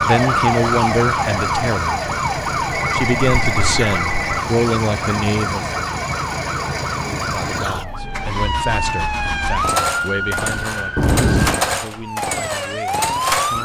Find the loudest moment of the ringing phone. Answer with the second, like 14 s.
11 s.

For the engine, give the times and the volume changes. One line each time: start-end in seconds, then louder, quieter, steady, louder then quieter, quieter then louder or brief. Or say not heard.
0.0-13.6 steady.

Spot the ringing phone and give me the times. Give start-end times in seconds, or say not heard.
2.7-4.5, 10.9-11.6.